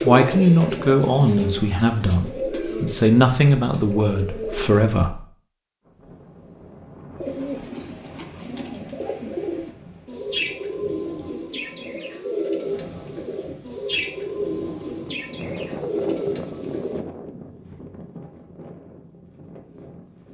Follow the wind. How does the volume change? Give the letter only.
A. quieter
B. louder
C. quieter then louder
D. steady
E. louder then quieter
E.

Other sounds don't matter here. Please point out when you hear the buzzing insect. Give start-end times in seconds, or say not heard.
not heard.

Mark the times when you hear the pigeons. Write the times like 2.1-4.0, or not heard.
0.0-4.8, 7.2-17.1.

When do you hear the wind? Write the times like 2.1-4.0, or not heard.
5.8-20.2.